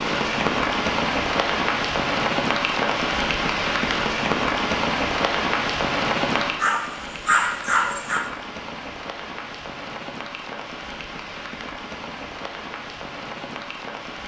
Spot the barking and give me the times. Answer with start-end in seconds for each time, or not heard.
6.6-8.3.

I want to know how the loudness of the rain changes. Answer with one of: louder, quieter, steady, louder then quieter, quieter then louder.
quieter.